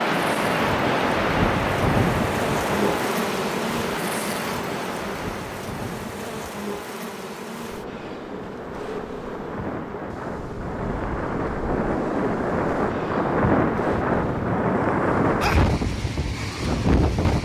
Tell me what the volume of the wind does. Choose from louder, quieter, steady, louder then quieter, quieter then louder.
quieter then louder.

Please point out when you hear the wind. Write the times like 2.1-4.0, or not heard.
0.0-17.4.